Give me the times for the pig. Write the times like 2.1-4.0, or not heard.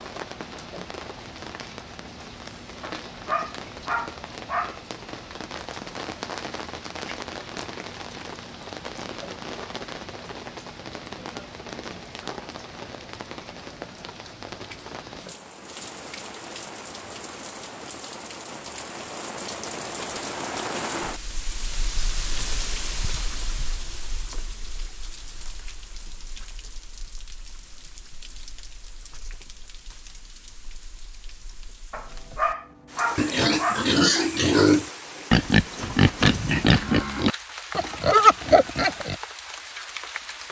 33.1-39.1.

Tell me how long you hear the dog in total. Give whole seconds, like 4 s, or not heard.
4 s.